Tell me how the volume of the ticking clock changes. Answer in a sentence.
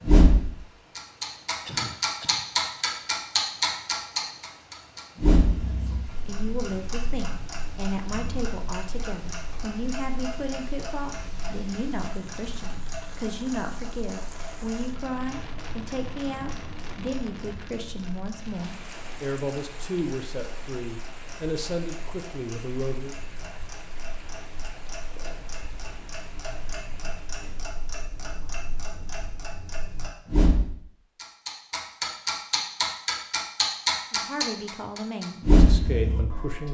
The loudness of the ticking clock goes down, then up.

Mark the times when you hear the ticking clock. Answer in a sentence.
The ticking clock can be heard from 0.0 to 36.7 s.